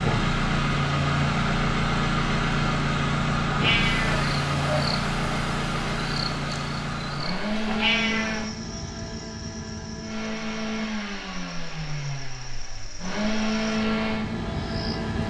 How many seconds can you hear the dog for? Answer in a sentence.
You can't hear the dog here.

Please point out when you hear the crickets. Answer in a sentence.
The crickets can be heard from 4.0 to 15.2 s.